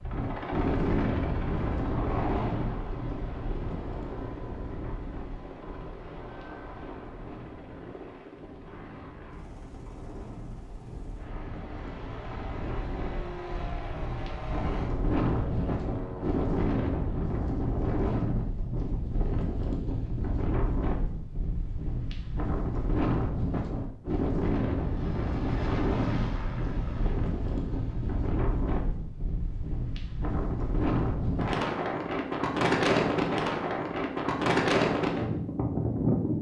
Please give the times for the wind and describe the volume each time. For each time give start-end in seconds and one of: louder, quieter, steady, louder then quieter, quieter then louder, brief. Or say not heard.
0.0-36.3 quieter then louder.